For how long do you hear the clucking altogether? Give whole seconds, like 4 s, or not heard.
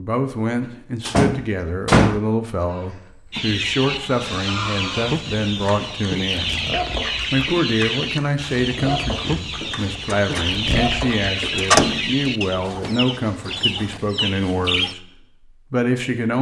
12 s.